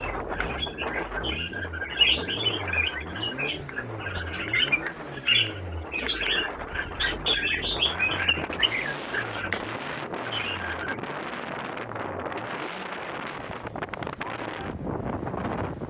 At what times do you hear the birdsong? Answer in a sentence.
The birdsong can be heard from 0.0 to 10.9 s.